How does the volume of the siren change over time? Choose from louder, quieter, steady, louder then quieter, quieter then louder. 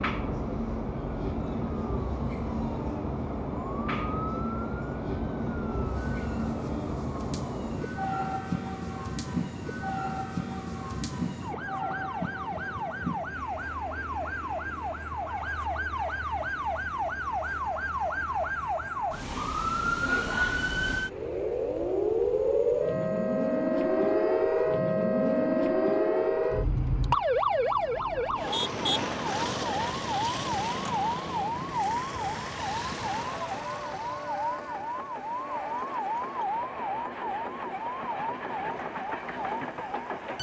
louder then quieter.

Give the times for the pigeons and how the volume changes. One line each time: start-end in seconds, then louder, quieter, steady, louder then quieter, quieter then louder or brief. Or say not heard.
not heard.